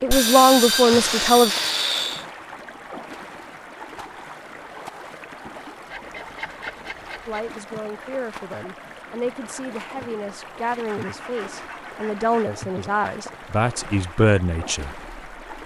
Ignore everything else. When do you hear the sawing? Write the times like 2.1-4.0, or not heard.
0.1-2.2, 5.9-7.5, 10.8-12.6.